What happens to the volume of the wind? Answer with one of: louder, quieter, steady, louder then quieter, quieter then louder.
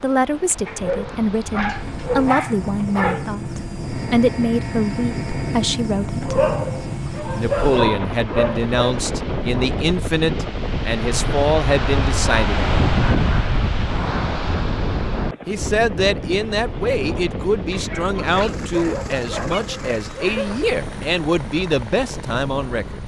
louder then quieter.